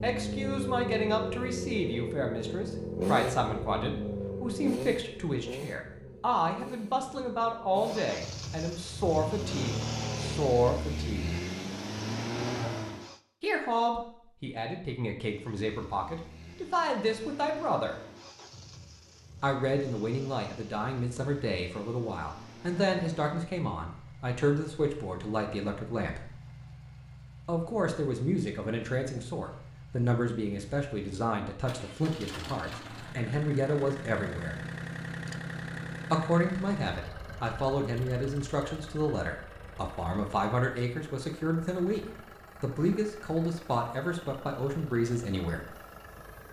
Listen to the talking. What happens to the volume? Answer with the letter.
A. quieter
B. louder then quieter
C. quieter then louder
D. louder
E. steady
E.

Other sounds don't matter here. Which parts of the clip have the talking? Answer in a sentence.
You can hear the talking from 0.0 to 11.4 s, from 13.4 to 17.9 s, from 19.4 to 26.3 s, from 27.4 to 34.5 s, from 36.1 to 42.0 s and from 42.6 to 45.6 s.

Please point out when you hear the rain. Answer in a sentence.
The rain can't be heard in this clip.